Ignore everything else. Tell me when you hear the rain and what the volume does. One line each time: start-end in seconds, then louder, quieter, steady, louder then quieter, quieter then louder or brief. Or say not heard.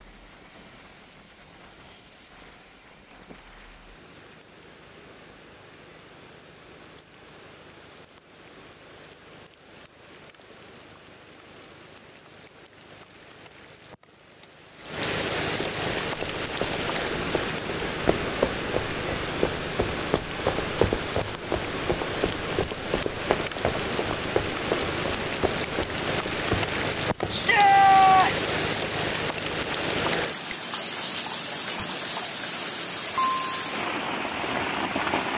0.0-35.3 louder.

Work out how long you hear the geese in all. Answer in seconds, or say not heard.
not heard.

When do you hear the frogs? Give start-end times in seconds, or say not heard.
not heard.